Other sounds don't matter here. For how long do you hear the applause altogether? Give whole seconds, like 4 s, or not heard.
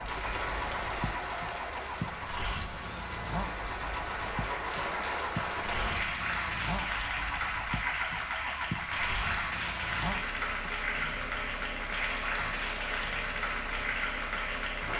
15 s.